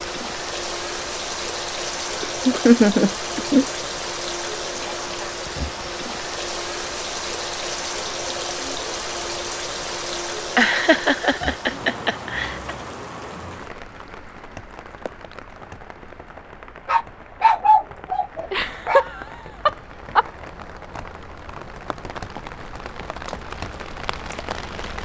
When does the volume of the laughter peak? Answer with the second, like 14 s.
3 s.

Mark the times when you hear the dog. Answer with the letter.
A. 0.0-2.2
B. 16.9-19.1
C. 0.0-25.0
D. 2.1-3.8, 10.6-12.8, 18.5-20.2
B.